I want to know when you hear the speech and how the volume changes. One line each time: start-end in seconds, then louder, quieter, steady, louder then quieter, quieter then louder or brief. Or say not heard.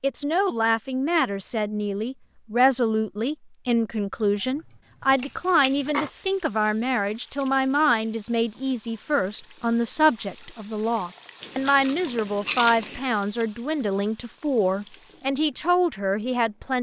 0.0-16.7 steady.